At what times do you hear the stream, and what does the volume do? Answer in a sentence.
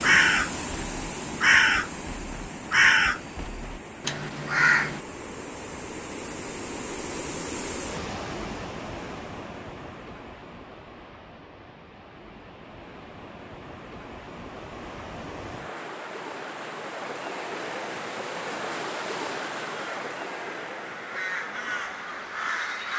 The stream can be heard from 0.0 to 22.9 s, getting quieter then louder.